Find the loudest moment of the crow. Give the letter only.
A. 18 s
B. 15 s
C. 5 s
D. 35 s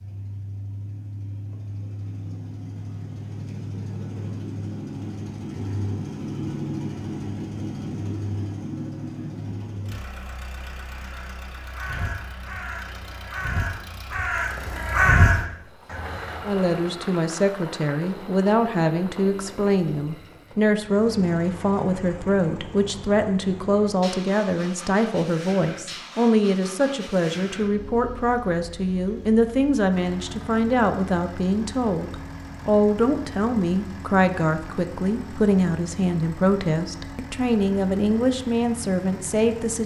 B.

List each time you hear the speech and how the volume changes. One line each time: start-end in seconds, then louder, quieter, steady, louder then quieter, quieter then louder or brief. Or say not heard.
16.4-39.8 steady.